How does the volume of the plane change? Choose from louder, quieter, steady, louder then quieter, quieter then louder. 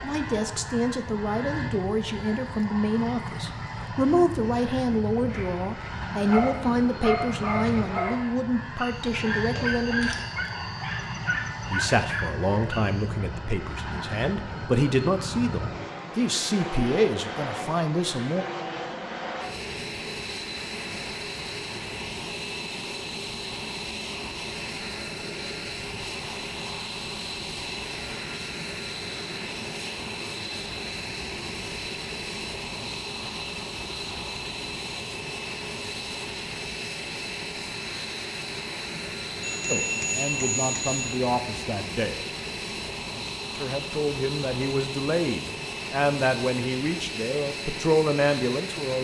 steady.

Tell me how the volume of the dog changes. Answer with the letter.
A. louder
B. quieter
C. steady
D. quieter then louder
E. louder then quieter
C.